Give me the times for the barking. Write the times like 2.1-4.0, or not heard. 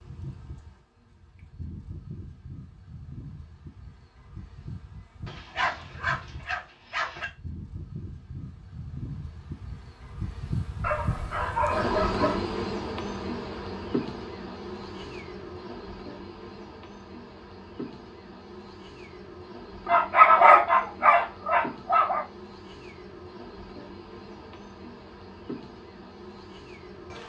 5.2-7.2, 10.8-12.4, 19.9-22.2.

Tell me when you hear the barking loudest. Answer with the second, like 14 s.
20 s.